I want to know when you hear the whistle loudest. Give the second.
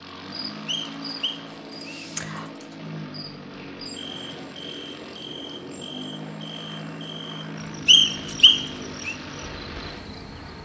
8 s.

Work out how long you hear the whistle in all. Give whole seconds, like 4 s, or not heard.
3 s.